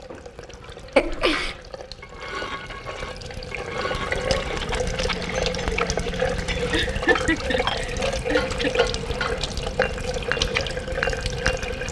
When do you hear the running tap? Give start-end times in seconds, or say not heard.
0.0-11.8.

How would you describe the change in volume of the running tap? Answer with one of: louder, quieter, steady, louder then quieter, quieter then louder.
louder.